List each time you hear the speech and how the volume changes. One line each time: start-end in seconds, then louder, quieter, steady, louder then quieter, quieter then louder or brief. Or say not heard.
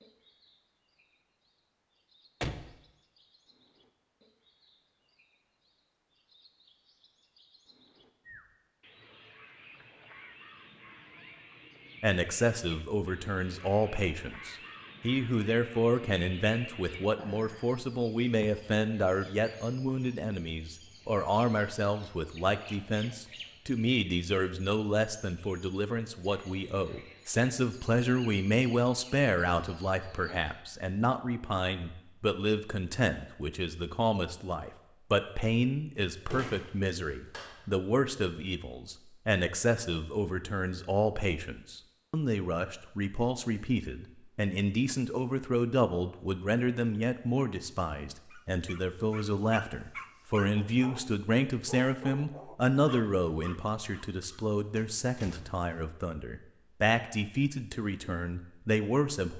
12.0-59.3 steady.